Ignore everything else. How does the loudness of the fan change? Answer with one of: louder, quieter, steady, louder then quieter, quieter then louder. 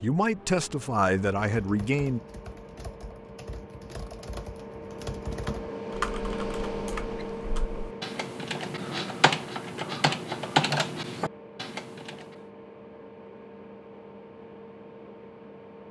louder then quieter.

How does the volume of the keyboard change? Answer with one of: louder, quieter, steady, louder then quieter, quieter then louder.
louder.